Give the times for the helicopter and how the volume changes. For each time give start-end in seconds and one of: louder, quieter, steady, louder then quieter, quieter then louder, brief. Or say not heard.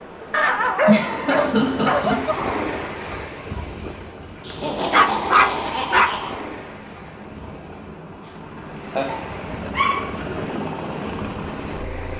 2.6-12.1 louder.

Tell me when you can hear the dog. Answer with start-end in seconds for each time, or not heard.
0.3-2.4, 4.5-6.2, 9.1-10.2.